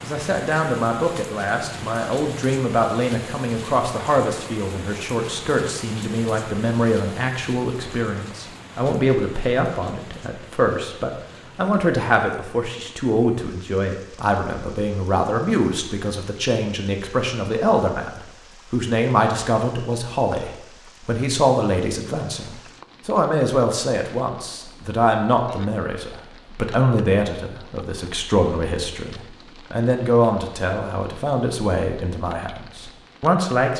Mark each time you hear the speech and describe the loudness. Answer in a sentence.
The speech can be heard from 0.0 to 33.7 s, at a steady volume.